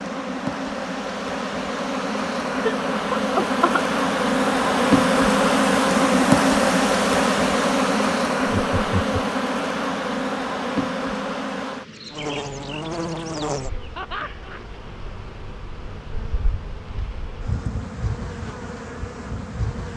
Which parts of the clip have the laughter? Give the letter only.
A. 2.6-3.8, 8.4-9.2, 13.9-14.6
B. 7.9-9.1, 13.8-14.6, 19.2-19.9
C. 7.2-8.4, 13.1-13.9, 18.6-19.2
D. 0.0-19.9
A.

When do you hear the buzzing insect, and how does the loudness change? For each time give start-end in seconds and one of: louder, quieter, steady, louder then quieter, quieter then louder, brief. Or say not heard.
0.0-19.9 louder then quieter.